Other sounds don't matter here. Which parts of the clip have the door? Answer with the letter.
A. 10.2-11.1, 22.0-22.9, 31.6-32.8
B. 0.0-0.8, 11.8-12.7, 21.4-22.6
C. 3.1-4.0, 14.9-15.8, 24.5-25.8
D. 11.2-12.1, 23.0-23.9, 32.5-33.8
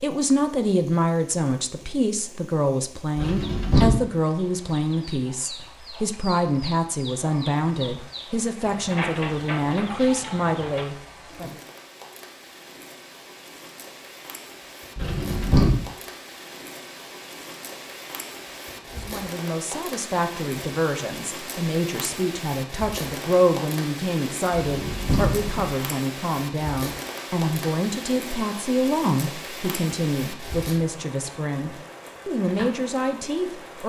C.